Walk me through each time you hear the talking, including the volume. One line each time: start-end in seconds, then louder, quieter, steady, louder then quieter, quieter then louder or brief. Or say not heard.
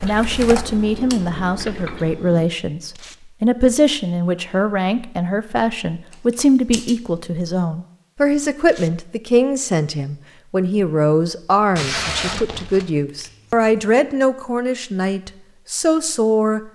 0.0-16.7 steady.